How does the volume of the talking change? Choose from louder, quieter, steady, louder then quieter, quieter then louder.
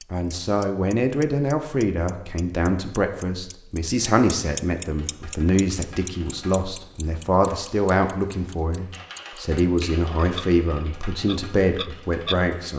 steady.